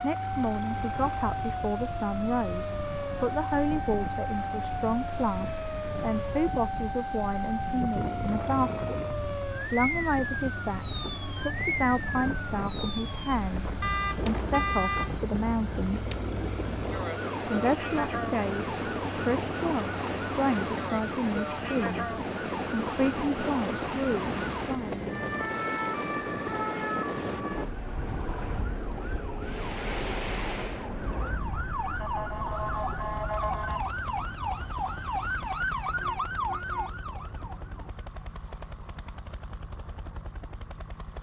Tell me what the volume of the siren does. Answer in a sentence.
The volume of the siren stays about the same.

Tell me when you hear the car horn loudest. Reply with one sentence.
The loudest moment of the car horn is at 15 seconds.